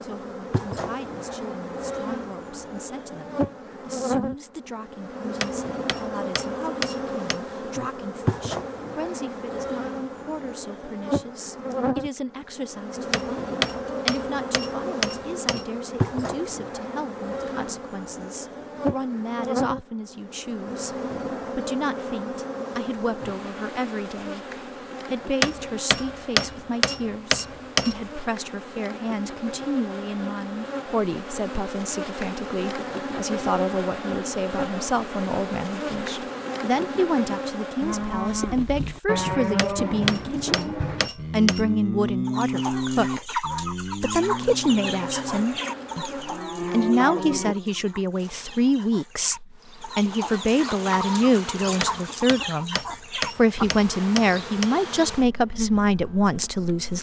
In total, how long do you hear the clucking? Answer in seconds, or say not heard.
12 s.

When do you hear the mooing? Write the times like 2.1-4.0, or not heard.
37.8-47.5.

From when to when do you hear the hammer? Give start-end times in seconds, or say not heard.
5.4-7.4, 13.1-15.7, 25.4-28.0, 39.5-41.7, 51.8-54.7.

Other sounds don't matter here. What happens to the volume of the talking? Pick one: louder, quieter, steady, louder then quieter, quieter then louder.
louder.